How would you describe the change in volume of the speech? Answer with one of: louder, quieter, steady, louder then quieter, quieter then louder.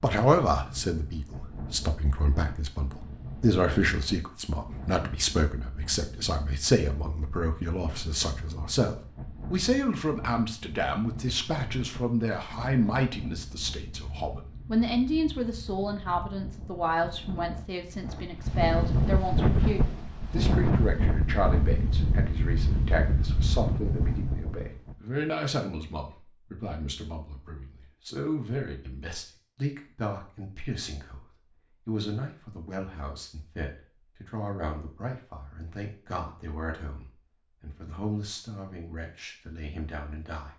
quieter.